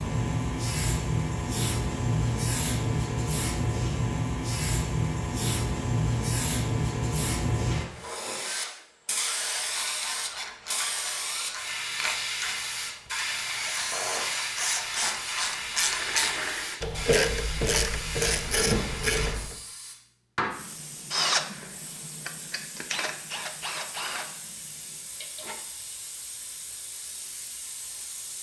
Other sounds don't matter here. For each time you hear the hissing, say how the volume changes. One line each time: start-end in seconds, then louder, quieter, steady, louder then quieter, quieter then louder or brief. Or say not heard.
0.0-28.3 quieter.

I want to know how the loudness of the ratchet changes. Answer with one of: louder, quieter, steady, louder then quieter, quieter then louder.
louder.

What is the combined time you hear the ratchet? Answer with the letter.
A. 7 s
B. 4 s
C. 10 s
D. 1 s
C.